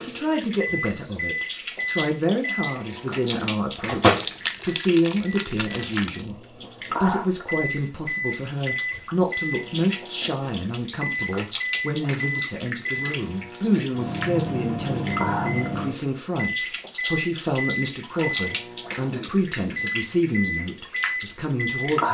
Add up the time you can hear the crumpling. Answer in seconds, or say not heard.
4 s.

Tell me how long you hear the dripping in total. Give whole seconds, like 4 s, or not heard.
22 s.